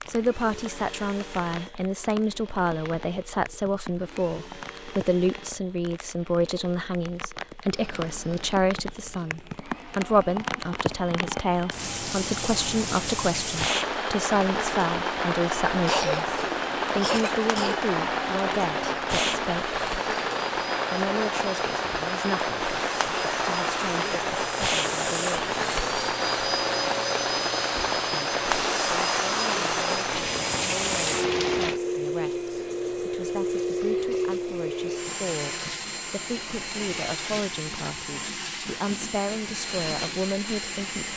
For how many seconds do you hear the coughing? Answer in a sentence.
You can hear the coughing for 2 seconds altogether.